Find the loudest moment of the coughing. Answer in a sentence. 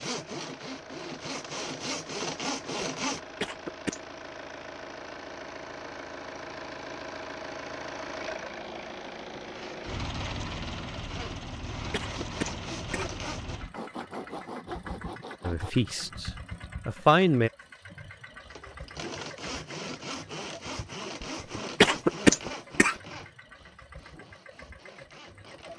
The volume of the coughing peaks at 22 seconds.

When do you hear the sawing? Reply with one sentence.
The sawing can be heard from 0.0 to 3.2 s, from 9.6 to 16.1 s and from 18.4 to 25.7 s.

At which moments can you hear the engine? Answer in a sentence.
You can hear the engine from 0.1 to 25.7 s.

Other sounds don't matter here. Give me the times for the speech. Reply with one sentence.
The speech can be heard from 15.4 to 17.5 s.